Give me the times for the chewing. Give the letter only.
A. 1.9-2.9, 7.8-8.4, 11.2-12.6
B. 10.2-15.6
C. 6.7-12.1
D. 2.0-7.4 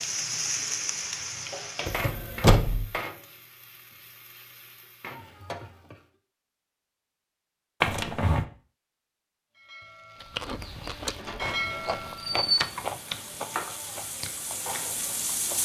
B.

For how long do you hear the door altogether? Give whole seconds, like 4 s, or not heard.
3 s.